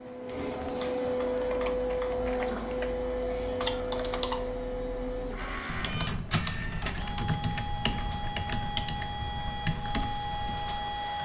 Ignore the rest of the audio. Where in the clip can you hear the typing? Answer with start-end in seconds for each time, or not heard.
1.3-11.1.